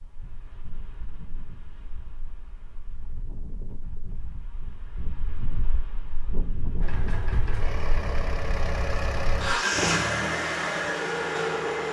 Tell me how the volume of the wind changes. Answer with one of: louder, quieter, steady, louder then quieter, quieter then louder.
louder.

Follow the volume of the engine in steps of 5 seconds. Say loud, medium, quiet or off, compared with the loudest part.
off, loud, loud.